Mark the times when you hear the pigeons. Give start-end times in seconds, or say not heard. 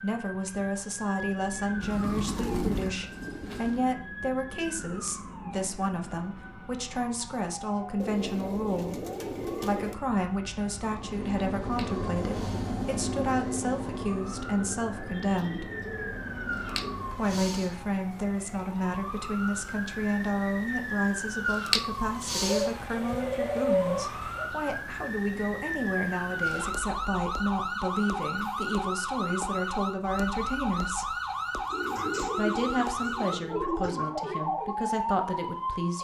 1.8-3.8, 8.0-9.9, 15.2-16.9, 22.4-24.5, 31.7-34.1.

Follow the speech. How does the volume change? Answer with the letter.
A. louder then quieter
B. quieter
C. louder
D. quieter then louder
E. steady
E.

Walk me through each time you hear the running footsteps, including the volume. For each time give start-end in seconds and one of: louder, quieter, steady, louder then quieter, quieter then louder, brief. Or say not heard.
not heard.